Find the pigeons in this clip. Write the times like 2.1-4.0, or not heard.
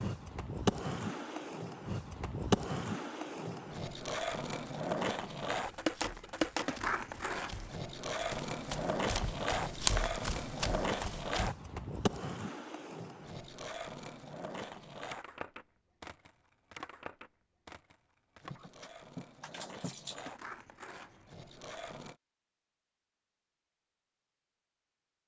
not heard.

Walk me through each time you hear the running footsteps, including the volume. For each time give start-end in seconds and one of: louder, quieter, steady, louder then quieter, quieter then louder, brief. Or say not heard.
5.5-11.5 louder then quieter.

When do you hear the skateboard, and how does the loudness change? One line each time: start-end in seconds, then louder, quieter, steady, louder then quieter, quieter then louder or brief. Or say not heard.
0.0-22.1 quieter.